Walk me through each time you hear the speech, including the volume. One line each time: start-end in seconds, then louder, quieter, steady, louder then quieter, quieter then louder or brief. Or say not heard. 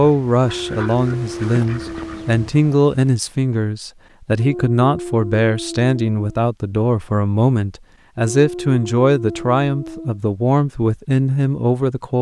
0.0-12.1 steady.